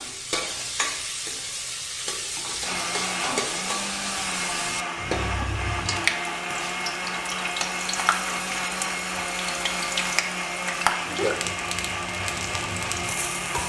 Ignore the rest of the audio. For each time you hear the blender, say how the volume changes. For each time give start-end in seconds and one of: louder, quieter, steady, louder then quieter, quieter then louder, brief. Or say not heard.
2.6-13.6 steady.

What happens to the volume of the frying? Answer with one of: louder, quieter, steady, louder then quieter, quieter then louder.
steady.